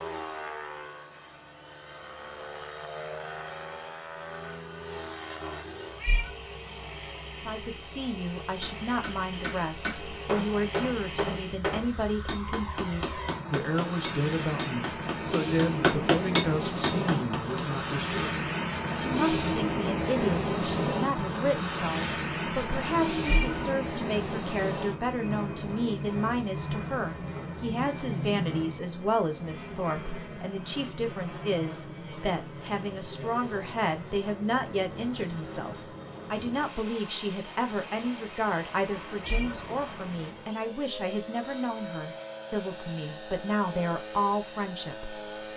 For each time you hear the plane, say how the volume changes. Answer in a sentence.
You can hear the plane from 0.0 to 45.5 s, getting louder then quieter.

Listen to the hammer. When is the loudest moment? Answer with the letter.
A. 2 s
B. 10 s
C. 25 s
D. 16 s
D.